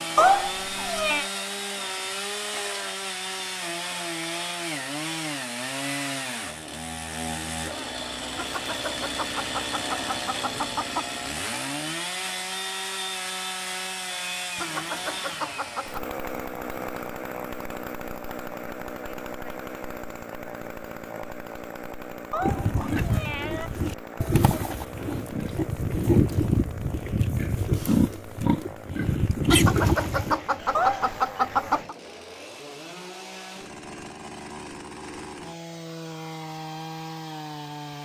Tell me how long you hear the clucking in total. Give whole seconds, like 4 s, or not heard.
7 s.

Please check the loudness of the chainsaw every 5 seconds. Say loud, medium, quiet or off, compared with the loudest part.
loud, loud, loud, loud, medium, medium, medium, medium.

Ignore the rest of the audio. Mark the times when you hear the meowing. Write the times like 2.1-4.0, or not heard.
0.1-1.2, 22.3-23.7, 30.7-31.1.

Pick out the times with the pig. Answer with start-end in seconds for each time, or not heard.
22.4-30.4.